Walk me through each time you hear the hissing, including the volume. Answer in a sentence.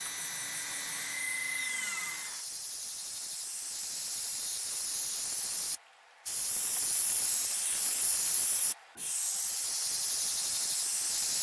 You can hear the hissing from 0.0 to 11.3 s, getting louder.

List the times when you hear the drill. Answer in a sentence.
You can hear the drill from 0.0 to 2.5 s.